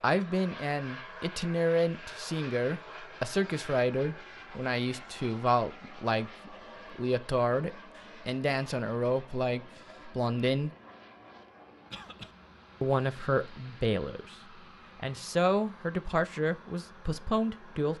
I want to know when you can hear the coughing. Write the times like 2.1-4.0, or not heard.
11.9-12.3.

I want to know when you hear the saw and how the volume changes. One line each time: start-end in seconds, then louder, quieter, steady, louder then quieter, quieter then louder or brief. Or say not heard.
not heard.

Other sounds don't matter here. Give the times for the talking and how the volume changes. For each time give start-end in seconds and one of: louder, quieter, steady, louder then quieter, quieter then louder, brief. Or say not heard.
0.0-10.7 steady
12.8-14.3 brief
14.9-17.9 brief.